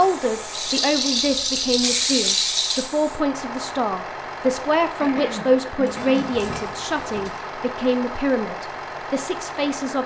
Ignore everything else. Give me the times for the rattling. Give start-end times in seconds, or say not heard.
0.5-2.9, 5.8-7.4.